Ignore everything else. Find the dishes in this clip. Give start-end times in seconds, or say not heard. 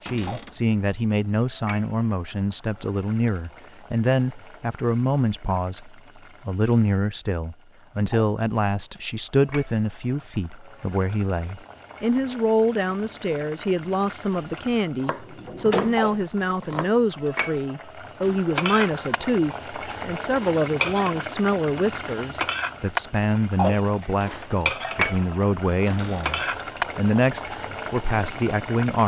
18.2-26.9.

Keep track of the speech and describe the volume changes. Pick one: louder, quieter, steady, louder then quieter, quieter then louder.
steady.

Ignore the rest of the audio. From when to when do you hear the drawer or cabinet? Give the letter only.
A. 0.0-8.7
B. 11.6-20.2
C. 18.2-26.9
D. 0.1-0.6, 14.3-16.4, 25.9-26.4
D.